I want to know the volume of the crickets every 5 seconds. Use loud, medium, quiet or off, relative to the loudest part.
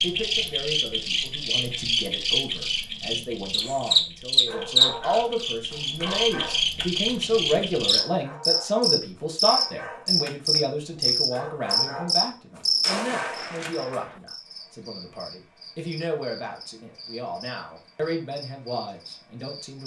loud, loud, loud, quiet.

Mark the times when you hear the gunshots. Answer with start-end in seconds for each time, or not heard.
12.8-14.2.